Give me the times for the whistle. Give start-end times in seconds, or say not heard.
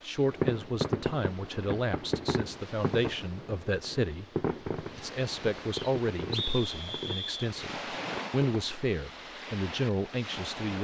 5.7-7.5.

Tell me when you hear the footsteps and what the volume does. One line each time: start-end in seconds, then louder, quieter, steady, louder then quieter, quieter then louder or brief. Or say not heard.
not heard.